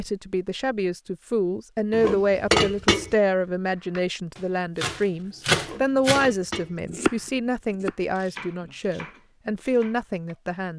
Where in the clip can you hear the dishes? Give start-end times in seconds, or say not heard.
1.9-3.1, 5.5-6.8.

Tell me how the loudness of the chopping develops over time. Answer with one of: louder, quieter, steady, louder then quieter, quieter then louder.
louder then quieter.